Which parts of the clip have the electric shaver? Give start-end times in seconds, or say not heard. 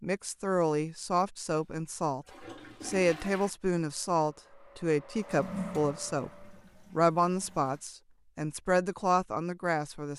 not heard.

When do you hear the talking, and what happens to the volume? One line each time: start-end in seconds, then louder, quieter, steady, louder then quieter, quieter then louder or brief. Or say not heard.
0.0-10.1 steady.